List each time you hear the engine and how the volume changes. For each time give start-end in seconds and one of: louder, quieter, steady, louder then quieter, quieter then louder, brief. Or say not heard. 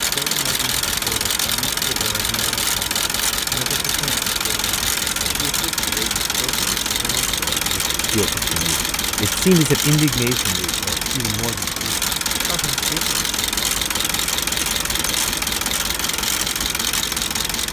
0.0-17.6 steady.